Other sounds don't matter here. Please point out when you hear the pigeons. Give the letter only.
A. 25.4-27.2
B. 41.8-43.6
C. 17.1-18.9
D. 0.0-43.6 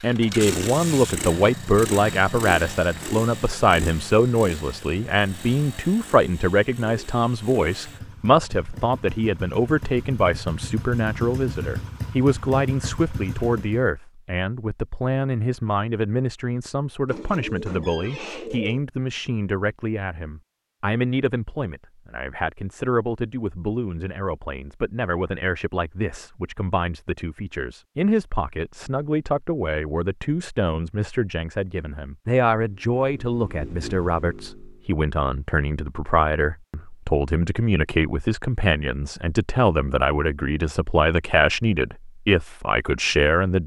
C.